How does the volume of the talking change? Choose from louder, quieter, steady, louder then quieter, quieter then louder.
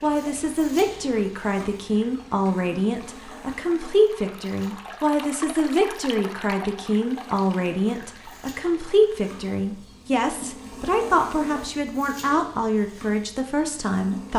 steady.